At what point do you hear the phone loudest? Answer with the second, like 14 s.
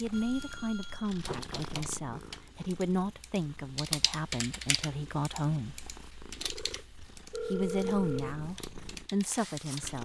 8 s.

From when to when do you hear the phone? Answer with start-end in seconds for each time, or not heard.
0.1-2.0, 7.3-8.3.